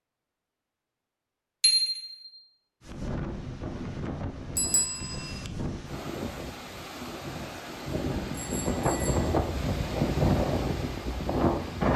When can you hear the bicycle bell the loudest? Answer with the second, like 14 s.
2 s.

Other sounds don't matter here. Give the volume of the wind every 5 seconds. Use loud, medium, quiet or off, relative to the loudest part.
medium, medium, loud.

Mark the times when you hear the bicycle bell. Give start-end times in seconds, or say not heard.
1.6-2.2, 4.5-5.4, 8.3-9.2.